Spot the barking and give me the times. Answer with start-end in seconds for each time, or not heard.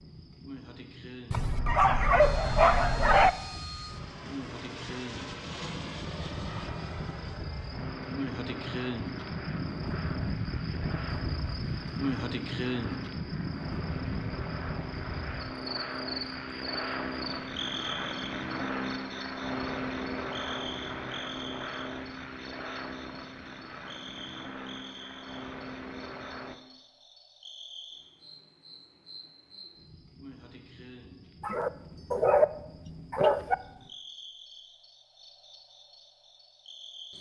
1.3-3.3, 31.4-33.5.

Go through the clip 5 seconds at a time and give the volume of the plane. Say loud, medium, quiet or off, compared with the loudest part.
medium, medium, medium, loud, loud, medium, off, off.